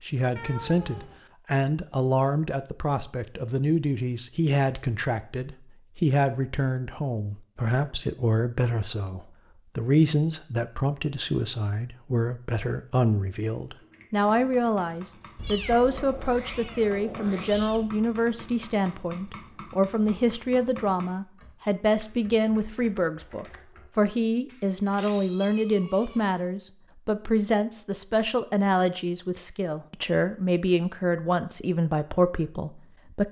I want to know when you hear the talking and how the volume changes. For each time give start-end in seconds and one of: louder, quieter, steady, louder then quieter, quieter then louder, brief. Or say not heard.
0.0-33.2 steady.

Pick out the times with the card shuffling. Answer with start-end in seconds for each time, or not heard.
not heard.